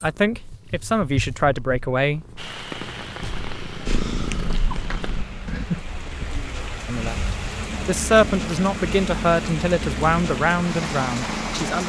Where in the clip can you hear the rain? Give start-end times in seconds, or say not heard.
2.4-11.8.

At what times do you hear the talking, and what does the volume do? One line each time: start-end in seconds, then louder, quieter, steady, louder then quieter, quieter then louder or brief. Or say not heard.
0.0-2.2 brief
6.8-11.8 louder then quieter.